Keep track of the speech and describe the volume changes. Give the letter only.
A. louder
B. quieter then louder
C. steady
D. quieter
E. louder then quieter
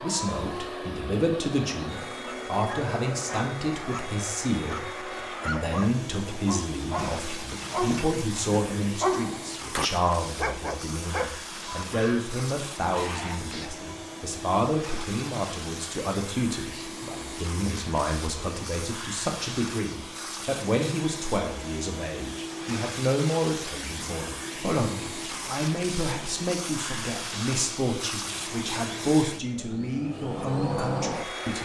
C.